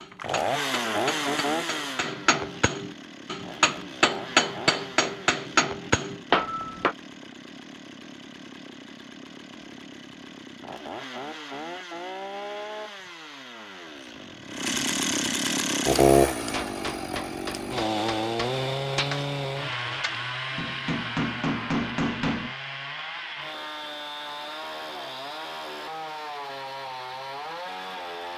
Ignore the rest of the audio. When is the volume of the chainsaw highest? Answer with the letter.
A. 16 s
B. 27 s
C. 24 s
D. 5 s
A.